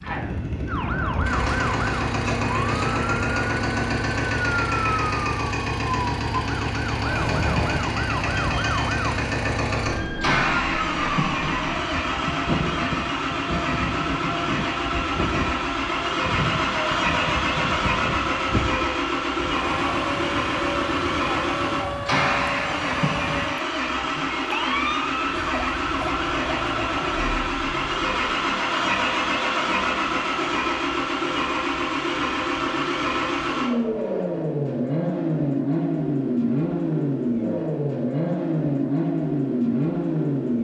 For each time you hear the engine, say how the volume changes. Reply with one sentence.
You can hear the engine from 0.0 to 40.5 s, at a steady volume.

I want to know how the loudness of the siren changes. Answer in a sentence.
The loudness of the siren stays about the same.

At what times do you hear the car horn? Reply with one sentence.
The car horn can be heard from 7.0 to 7.9 s.